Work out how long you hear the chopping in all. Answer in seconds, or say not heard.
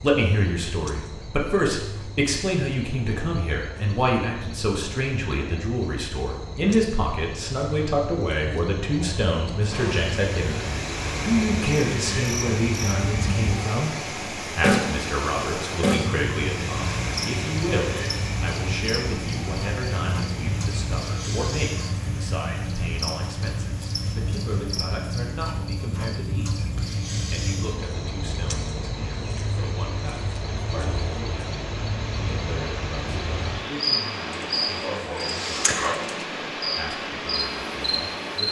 not heard.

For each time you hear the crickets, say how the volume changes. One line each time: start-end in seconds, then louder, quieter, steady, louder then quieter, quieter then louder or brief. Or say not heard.
0.0-38.4 louder.